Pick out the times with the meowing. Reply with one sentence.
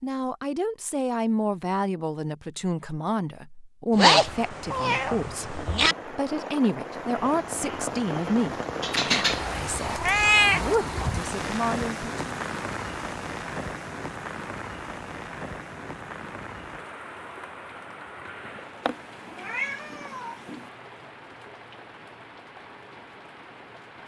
You can hear the meowing from 4.0 to 6.0 s, from 8.8 to 10.7 s and from 18.9 to 20.6 s.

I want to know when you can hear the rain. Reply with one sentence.
You can hear the rain from 4.2 to 24.0 s.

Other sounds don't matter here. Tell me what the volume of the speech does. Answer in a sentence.
The volume of the speech stays about the same.